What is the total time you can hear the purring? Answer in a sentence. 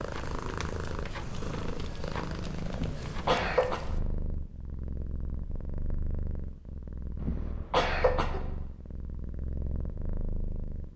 You can hear the purring for 11 seconds altogether.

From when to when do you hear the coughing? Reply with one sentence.
You can hear the coughing from 2.7 to 3.8 s and from 7.2 to 8.4 s.